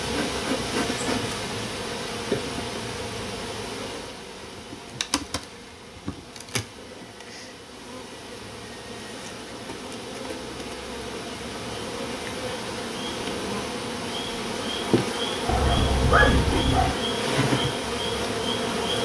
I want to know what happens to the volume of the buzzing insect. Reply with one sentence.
The loudness of the buzzing insect goes down, then up.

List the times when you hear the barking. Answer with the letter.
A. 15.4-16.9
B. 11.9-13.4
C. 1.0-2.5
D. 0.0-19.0
A.